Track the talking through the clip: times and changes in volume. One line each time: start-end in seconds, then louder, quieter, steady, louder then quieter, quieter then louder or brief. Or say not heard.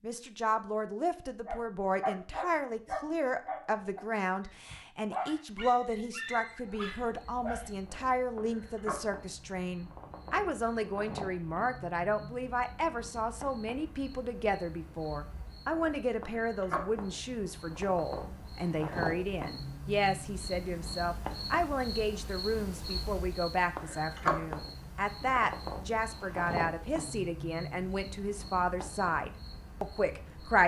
0.0-30.6 steady.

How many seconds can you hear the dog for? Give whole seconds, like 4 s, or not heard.
6 s.